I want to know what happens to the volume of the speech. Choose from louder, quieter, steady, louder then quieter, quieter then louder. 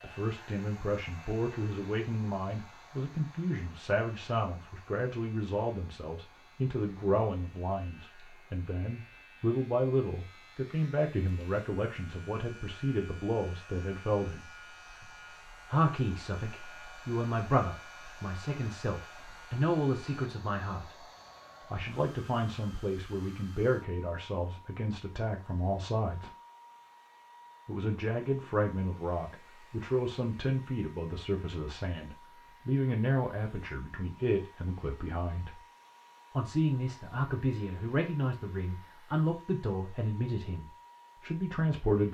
steady.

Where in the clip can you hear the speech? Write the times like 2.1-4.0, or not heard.
0.0-14.4, 15.7-21.1, 21.7-26.3, 27.6-35.6, 36.4-42.0.